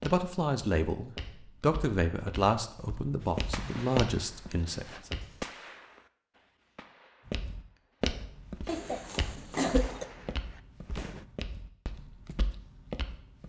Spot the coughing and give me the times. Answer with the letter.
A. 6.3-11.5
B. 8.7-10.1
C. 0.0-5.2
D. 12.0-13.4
B.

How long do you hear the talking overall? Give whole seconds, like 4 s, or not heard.
5 s.